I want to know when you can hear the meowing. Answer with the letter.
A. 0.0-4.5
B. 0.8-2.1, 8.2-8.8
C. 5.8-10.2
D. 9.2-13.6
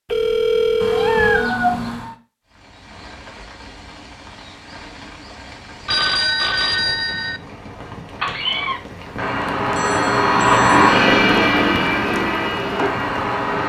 B.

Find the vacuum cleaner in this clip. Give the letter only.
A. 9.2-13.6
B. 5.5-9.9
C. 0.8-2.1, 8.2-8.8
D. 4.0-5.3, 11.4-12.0
A.